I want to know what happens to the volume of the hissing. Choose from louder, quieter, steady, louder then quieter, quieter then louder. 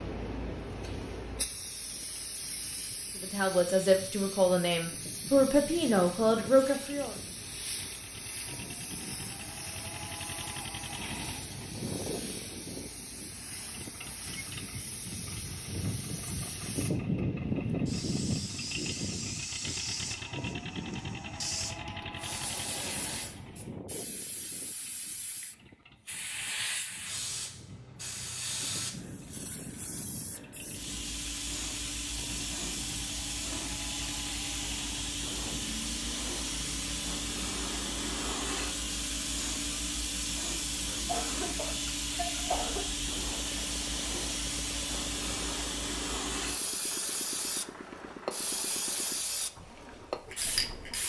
louder.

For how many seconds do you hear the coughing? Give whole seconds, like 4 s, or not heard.
2 s.